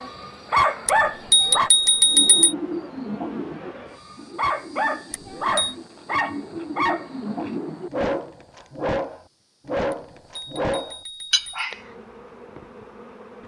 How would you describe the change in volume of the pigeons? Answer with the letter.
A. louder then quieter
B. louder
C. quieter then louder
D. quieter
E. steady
C.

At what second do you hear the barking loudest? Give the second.
1 s.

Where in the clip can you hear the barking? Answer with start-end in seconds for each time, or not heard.
0.0-1.7, 4.0-11.8.